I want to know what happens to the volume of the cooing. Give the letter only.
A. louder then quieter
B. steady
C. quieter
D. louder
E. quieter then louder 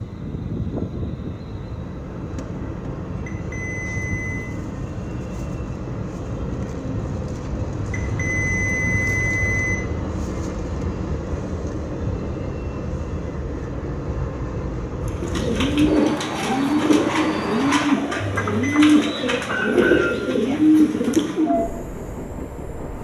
B.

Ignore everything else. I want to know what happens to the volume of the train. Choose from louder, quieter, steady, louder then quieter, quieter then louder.
steady.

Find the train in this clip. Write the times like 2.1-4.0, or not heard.
0.0-22.9.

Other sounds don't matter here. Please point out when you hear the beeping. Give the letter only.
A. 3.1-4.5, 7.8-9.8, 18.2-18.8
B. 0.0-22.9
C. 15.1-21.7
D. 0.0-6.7
A.